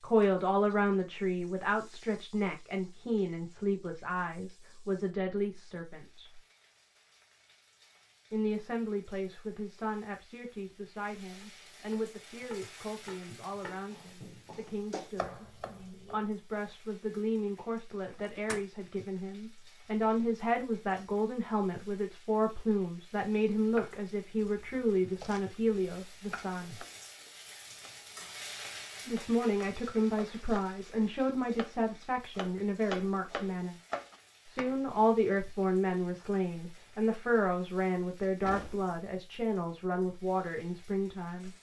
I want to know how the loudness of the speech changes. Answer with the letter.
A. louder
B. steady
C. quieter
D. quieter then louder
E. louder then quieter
D.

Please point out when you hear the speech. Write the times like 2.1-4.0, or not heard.
0.0-6.4, 8.3-26.8, 29.1-33.8, 34.5-41.5.